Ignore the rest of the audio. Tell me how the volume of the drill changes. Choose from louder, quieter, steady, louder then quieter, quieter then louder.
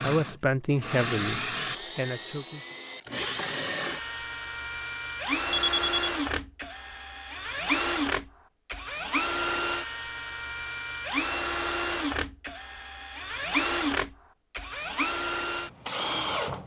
steady.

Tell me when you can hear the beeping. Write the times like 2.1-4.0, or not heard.
5.5-6.1.